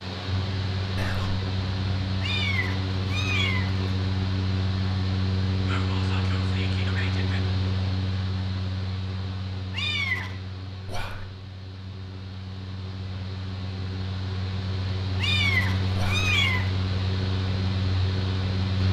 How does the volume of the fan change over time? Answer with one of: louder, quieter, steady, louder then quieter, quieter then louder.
quieter then louder.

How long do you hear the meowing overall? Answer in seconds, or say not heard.
4 s.